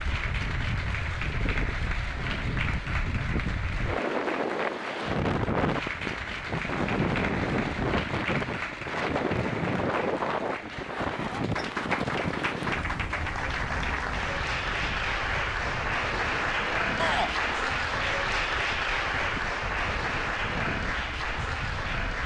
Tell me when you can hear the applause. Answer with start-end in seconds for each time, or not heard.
0.0-22.2.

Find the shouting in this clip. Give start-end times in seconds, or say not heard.
16.9-17.4.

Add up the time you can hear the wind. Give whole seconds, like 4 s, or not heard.
22 s.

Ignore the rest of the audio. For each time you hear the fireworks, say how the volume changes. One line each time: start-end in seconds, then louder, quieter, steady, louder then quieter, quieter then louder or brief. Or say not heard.
not heard.